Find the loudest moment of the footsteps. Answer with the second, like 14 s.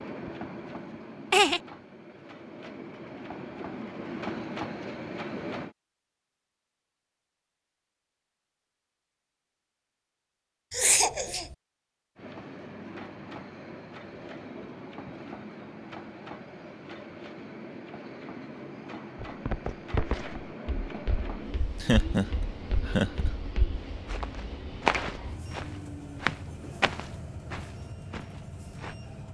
25 s.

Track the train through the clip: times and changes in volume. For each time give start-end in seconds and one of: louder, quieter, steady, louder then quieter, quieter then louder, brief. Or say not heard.
0.0-5.8 quieter then louder
12.2-29.2 steady.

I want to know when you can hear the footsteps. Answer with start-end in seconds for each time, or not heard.
19.1-28.9.